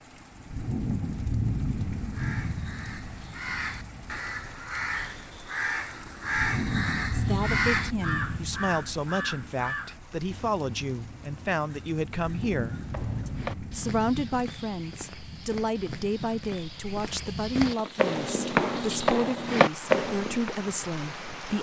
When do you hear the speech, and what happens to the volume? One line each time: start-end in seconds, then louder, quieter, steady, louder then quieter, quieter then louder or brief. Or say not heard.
7.1-21.5 steady.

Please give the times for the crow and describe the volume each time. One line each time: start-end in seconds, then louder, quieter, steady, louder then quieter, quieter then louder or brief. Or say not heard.
1.9-13.2 louder then quieter.